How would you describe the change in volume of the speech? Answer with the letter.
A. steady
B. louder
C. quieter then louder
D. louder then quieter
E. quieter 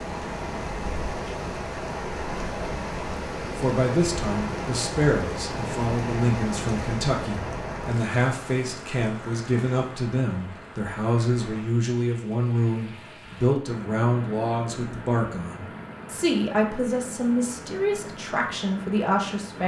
A.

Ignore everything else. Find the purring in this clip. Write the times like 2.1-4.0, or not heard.
not heard.